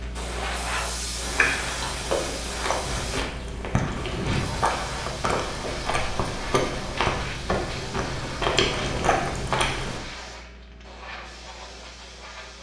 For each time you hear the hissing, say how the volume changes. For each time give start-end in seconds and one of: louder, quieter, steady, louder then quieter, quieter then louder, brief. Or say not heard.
0.0-12.5 quieter.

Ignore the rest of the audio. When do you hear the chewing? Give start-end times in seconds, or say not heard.
1.2-10.0.